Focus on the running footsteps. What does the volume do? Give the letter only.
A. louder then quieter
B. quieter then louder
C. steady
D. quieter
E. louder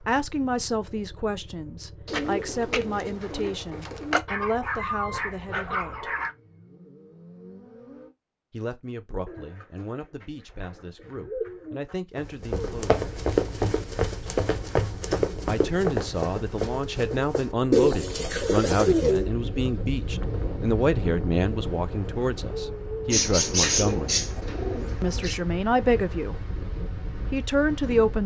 D.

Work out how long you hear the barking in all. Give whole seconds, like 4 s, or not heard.
2 s.